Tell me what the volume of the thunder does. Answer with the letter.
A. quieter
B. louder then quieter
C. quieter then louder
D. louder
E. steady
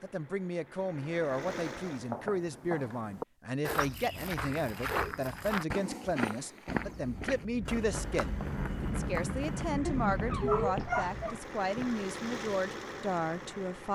D.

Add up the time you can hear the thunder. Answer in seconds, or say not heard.
4 s.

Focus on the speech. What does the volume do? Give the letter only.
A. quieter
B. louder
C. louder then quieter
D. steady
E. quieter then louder
D.